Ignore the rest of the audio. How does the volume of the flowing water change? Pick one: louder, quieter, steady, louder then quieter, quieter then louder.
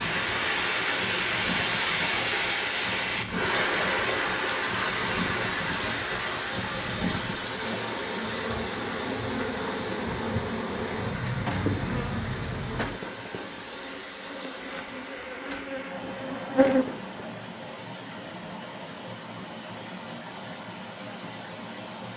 quieter.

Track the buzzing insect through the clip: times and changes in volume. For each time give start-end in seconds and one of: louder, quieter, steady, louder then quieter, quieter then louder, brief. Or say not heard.
0.0-17.3 louder.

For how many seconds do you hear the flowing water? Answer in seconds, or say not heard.
22 s.